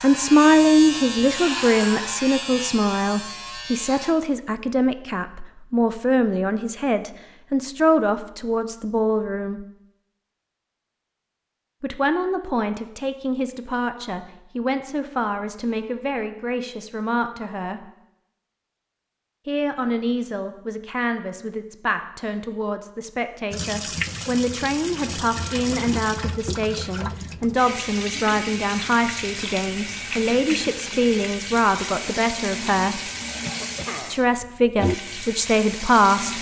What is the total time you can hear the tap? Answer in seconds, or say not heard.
13 s.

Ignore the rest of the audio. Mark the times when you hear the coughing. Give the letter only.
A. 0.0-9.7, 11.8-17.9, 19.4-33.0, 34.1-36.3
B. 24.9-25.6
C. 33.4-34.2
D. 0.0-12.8
C.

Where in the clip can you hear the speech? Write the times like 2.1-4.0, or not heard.
0.0-9.7, 11.8-17.9, 19.4-33.0, 34.1-36.3.